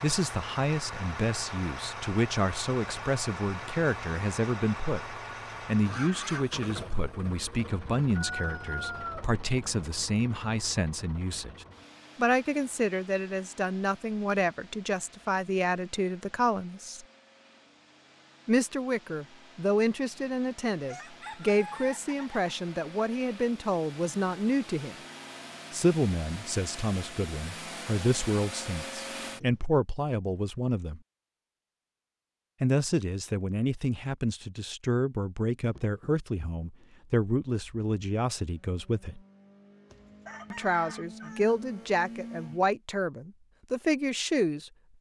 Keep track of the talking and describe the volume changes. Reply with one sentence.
The loudness of the talking stays about the same.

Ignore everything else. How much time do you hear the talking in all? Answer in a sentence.
You can hear the talking for 40 seconds altogether.